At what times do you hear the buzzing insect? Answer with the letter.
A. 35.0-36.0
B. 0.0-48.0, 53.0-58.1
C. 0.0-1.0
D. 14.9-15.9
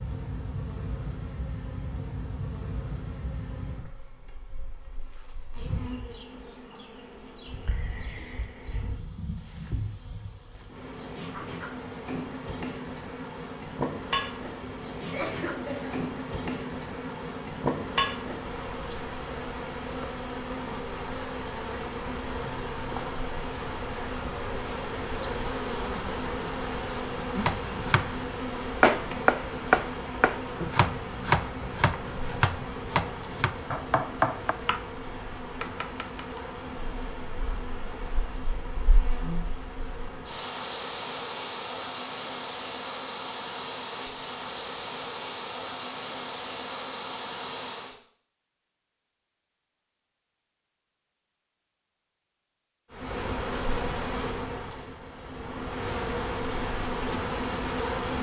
B.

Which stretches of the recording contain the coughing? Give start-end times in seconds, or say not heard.
14.9-15.9.